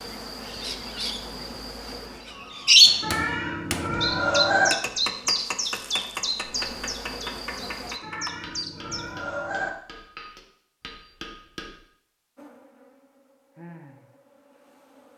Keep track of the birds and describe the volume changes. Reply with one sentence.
The loudness of the birds goes up, then down.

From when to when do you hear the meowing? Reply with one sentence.
The meowing can be heard from 3.0 to 4.7 s and from 8.0 to 9.7 s.